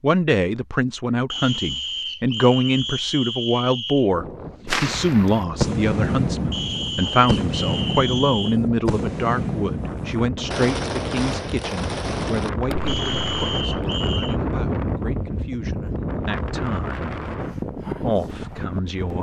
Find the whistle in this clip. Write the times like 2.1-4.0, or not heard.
1.3-4.1, 6.5-8.6, 12.8-14.3.